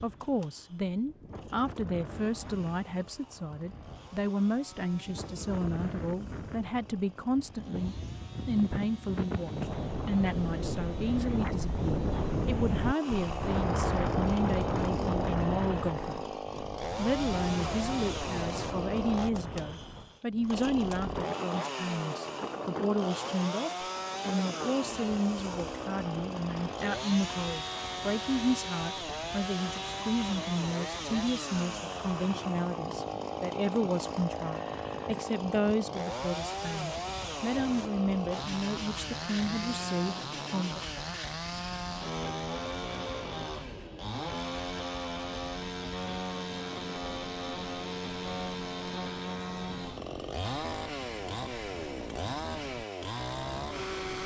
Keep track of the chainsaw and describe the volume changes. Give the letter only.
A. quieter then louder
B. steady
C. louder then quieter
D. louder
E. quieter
D.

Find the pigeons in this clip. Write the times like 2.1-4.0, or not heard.
not heard.